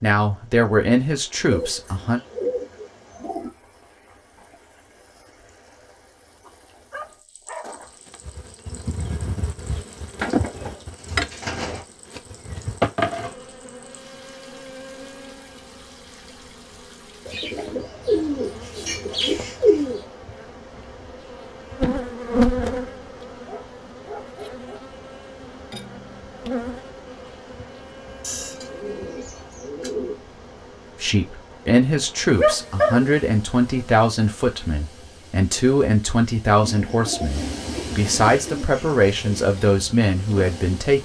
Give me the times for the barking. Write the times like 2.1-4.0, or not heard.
6.4-8.0, 23.4-24.9, 32.4-33.1.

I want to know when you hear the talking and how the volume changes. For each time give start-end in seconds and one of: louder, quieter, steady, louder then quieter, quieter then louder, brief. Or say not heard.
0.0-2.2 brief
31.0-40.9 steady.